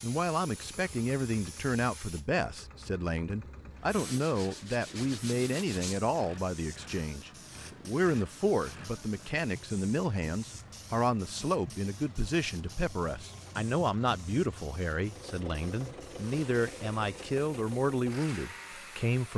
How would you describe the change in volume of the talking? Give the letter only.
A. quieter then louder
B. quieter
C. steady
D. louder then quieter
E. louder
C.